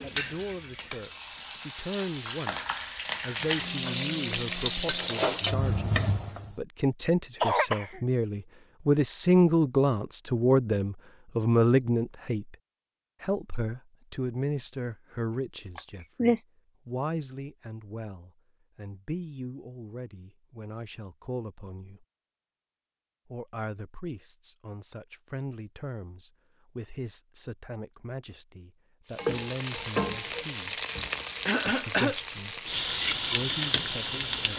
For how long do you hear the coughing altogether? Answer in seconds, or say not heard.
2 s.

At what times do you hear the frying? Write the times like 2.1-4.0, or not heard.
0.0-6.5, 29.1-34.5.